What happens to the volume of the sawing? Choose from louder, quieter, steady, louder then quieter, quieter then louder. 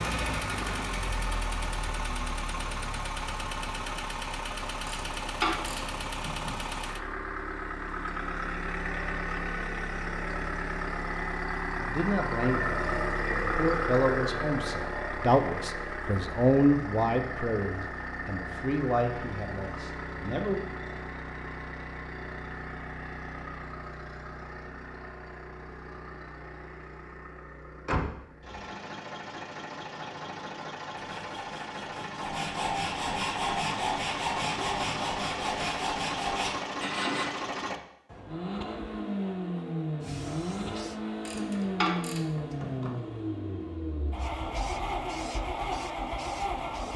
louder.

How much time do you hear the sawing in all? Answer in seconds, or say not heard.
6 s.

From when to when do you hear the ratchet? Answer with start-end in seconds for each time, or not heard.
4.8-6.5, 41.2-43.0.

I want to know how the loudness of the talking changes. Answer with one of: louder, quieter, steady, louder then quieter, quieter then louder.
louder then quieter.